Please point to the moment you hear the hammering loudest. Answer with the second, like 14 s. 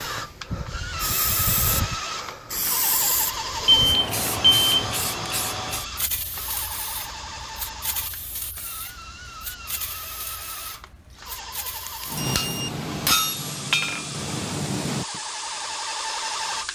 13 s.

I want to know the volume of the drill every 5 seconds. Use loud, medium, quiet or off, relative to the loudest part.
loud, medium, medium, loud.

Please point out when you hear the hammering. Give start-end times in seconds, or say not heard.
12.1-15.2.